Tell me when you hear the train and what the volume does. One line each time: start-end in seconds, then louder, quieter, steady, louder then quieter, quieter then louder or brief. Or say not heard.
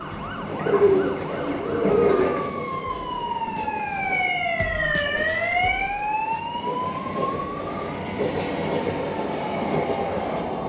0.0-10.6 quieter then louder.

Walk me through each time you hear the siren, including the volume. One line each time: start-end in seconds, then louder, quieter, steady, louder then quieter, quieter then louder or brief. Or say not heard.
0.0-10.6 louder then quieter.